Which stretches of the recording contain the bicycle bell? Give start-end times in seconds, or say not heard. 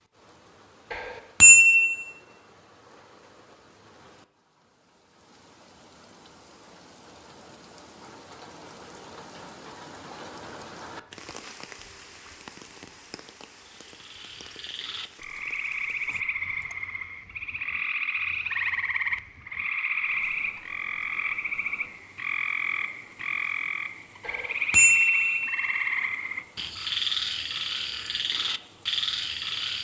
0.9-1.9, 24.2-25.6.